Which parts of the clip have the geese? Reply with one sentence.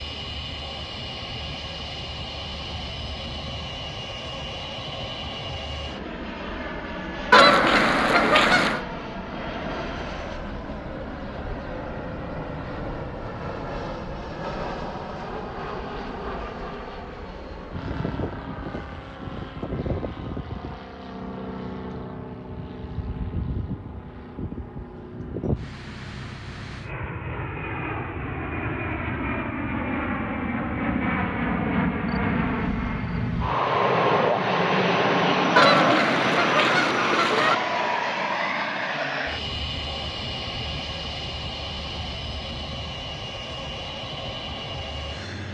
You can hear the geese from 7.3 to 8.8 s and from 35.5 to 37.5 s.